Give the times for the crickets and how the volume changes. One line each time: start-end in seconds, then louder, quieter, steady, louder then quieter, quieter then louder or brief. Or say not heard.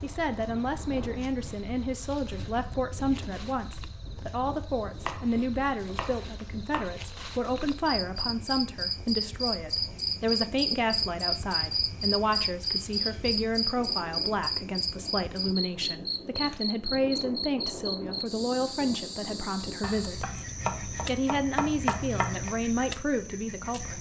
0.0-23.9 louder then quieter.